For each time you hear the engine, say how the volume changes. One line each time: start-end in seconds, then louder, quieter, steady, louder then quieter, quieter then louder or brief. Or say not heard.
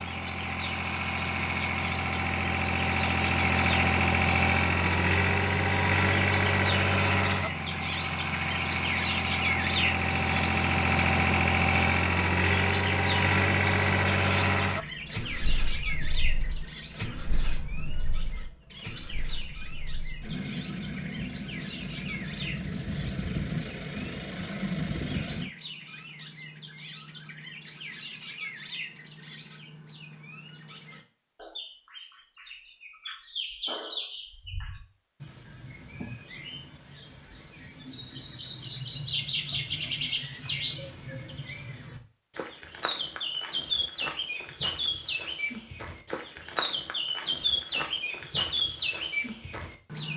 0.0-25.5 quieter then louder.